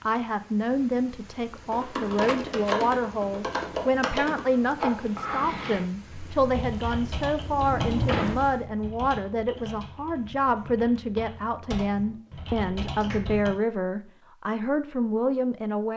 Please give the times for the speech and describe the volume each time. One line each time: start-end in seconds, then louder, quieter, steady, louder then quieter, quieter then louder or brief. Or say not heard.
0.0-15.9 steady.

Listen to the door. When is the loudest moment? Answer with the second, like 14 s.
8 s.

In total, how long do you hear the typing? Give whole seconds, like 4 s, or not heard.
12 s.